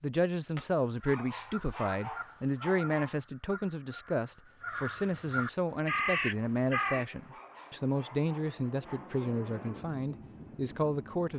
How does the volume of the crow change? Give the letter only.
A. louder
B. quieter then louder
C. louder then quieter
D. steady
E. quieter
B.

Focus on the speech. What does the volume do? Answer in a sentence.
The volume of the speech stays about the same.